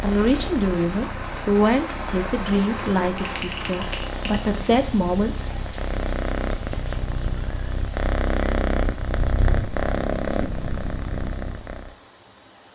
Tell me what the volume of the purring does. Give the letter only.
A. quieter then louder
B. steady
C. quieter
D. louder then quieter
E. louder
E.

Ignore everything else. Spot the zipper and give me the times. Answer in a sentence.
The zipper can't be heard in this clip.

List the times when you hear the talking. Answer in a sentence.
The talking can be heard from 0.0 to 5.3 s.